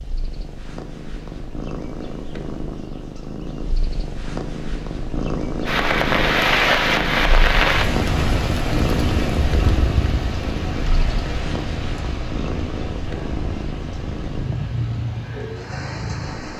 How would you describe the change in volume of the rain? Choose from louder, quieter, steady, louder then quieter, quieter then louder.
quieter.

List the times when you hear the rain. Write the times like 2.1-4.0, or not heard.
5.7-16.5.